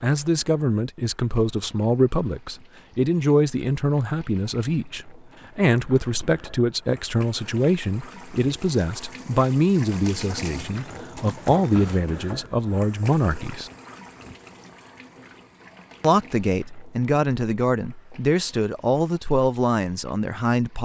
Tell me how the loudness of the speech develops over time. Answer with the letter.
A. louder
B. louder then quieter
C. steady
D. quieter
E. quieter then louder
C.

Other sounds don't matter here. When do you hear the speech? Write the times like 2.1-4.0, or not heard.
0.0-13.7, 16.0-20.8.